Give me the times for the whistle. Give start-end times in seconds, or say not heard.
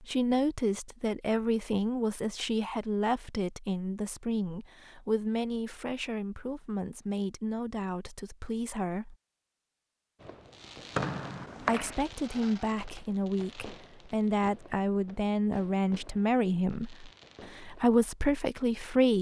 10.9-12.0.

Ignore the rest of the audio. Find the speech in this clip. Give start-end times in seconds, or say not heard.
0.0-9.2, 11.6-19.1.